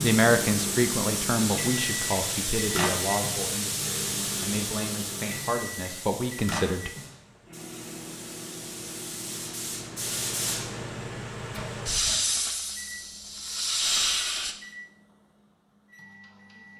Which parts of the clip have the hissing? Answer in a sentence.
The hissing can be heard from 0.0 to 14.6 s.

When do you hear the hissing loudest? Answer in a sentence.
The loudest moment of the hissing is at 14 seconds.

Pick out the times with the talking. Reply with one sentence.
The talking can be heard from 0.0 to 6.9 s.